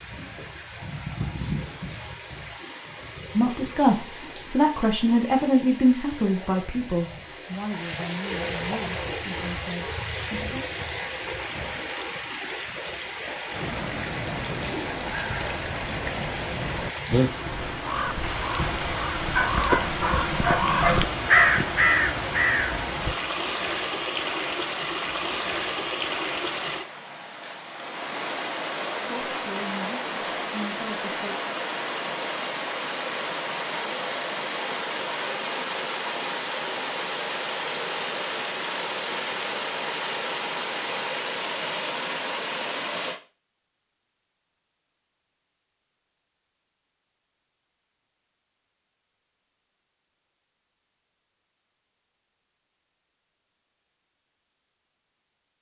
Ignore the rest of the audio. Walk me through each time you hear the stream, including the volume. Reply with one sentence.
You can hear the stream from 0.0 to 43.2 s, getting louder.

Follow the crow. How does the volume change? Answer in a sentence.
The loudness of the crow goes up.